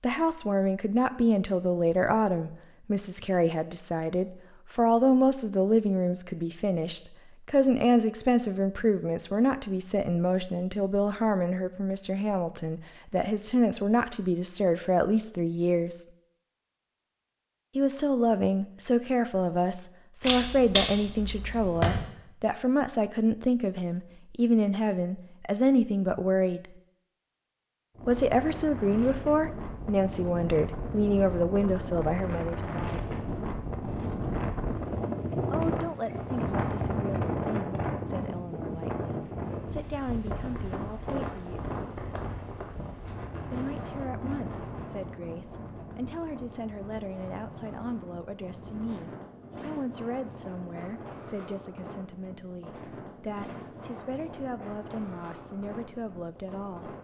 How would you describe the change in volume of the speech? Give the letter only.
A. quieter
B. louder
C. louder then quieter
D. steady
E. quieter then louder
A.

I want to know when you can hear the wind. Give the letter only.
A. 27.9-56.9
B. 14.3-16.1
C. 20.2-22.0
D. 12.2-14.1
A.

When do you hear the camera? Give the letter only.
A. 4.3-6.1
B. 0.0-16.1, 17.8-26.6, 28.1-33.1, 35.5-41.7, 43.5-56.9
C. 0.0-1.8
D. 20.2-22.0
D.